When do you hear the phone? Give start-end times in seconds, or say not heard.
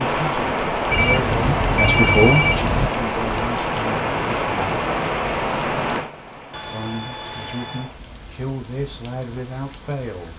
0.9-2.9, 6.5-7.9.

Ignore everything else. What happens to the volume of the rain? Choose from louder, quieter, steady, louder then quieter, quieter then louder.
quieter.